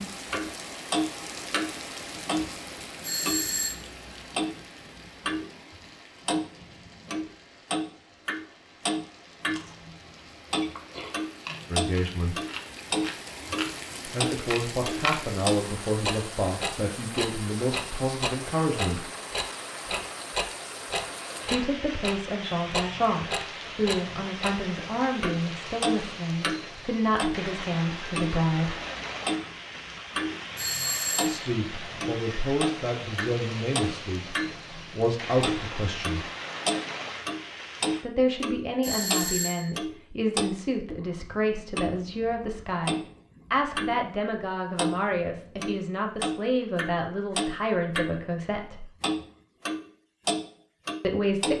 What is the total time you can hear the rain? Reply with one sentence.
The rain can be heard for 38 seconds in total.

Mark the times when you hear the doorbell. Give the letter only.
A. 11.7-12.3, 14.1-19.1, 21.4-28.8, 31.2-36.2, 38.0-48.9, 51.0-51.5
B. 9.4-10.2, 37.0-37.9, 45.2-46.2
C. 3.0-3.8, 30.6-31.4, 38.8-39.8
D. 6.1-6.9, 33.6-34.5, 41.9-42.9
C.